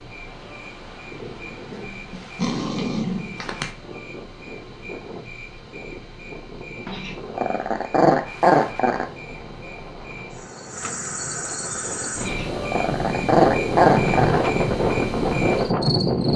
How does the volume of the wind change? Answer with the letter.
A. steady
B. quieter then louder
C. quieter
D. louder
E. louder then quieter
D.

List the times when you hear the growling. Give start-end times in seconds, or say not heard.
1.7-3.7, 6.8-9.1, 12.2-14.4.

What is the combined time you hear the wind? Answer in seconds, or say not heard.
16 s.